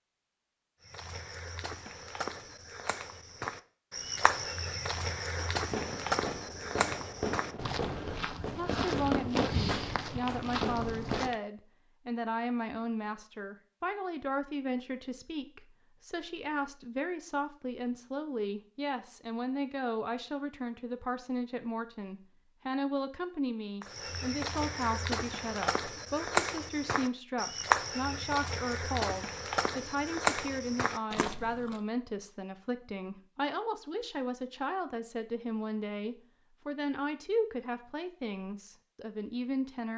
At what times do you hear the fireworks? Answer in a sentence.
The fireworks can be heard from 5.0 to 11.3 s.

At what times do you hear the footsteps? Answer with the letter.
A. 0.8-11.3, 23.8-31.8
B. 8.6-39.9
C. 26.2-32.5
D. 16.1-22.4
A.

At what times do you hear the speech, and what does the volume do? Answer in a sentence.
You can hear the speech from 8.6 to 39.9 s, at a steady volume.